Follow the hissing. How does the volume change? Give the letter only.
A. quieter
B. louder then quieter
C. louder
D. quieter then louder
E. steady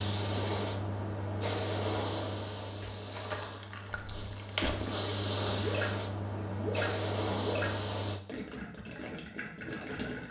D.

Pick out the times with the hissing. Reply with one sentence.
The hissing can be heard from 0.0 to 8.2 s.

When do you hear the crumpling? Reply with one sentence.
The crumpling can be heard from 2.8 to 5.1 s.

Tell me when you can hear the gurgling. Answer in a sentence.
The gurgling can be heard from 3.9 to 10.2 s.